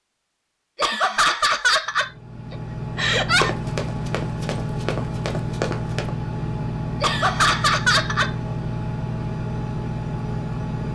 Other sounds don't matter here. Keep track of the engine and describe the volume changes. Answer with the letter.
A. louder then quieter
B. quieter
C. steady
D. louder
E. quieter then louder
C.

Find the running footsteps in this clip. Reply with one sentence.
You can hear the running footsteps from 3.4 to 6.1 s.